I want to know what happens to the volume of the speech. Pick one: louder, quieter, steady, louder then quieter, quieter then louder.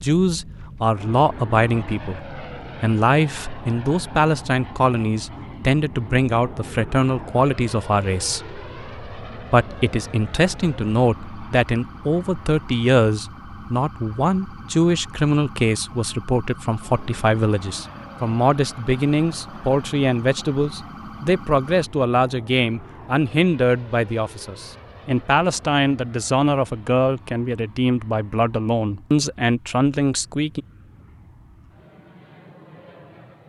steady.